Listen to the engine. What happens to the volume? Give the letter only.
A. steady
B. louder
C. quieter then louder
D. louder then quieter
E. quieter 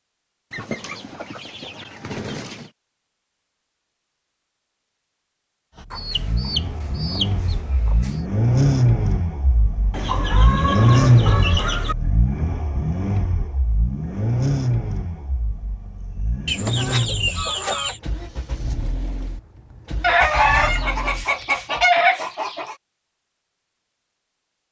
E.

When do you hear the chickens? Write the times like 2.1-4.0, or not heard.
0.5-2.7, 5.9-8.2, 9.9-11.9, 16.4-18.0, 20.0-22.8.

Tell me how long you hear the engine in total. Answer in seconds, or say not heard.
16 s.